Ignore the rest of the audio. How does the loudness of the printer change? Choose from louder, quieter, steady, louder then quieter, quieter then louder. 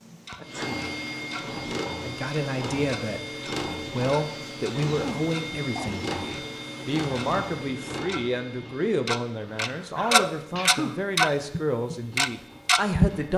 quieter.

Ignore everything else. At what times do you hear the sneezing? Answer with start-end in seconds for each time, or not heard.
0.3-0.8, 4.8-6.0, 9.8-11.0.